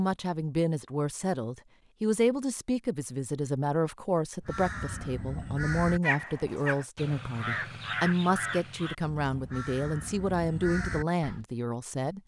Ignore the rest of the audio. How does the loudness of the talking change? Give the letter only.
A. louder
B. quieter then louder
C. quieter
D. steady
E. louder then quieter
D.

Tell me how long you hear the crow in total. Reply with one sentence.
The crow can be heard for 7 seconds in total.